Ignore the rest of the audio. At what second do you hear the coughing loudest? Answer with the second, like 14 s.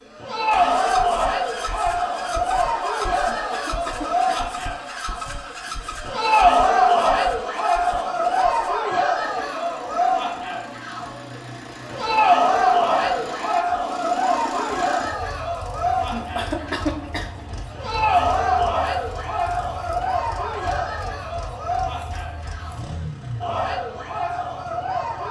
17 s.